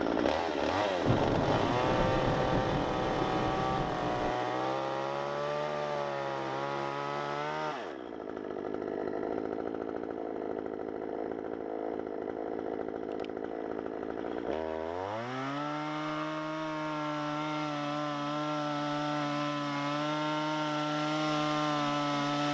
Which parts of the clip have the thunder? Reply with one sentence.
The thunder can be heard from 1.1 to 4.3 s.